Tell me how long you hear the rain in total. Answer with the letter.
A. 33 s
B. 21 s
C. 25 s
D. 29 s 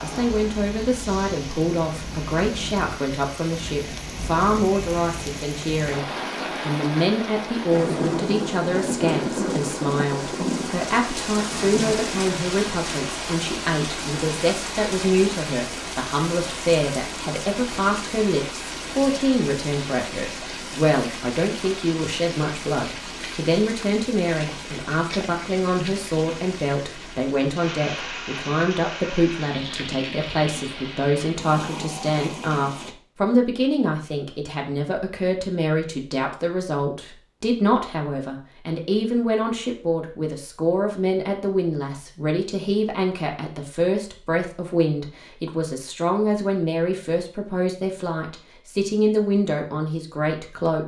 A.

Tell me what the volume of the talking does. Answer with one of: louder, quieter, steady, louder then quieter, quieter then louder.
steady.